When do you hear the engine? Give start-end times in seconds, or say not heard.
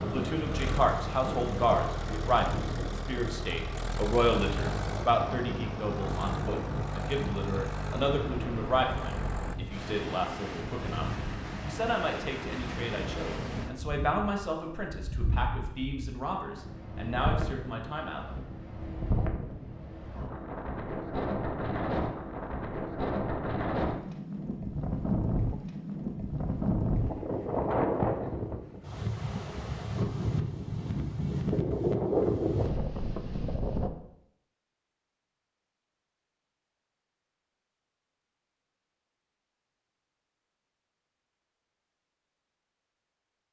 0.0-9.6.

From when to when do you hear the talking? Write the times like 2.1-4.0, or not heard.
0.0-18.2.